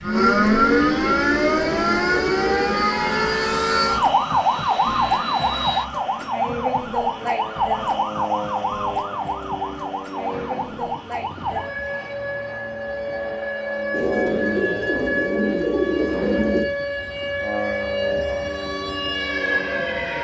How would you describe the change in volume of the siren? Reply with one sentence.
The loudness of the siren goes down.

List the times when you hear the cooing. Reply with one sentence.
You can hear the cooing from 0.6 to 2.9 s and from 13.9 to 16.7 s.